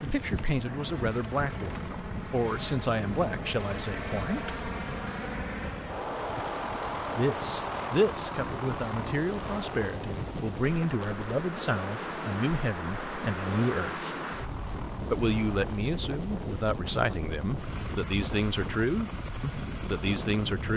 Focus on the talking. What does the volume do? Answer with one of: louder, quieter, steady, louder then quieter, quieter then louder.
steady.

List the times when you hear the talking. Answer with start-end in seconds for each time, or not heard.
0.0-4.7, 7.2-14.1, 15.1-20.7.